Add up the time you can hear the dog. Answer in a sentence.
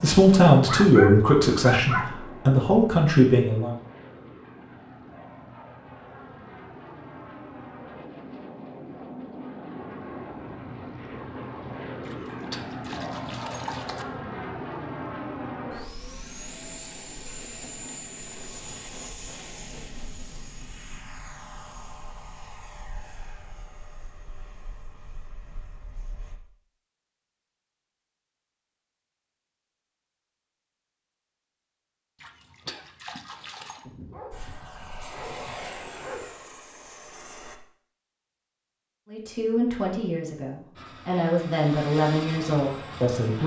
You can hear the dog for 4 seconds altogether.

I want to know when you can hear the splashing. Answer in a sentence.
You can hear the splashing from 12.1 to 14.1 s and from 32.2 to 33.9 s.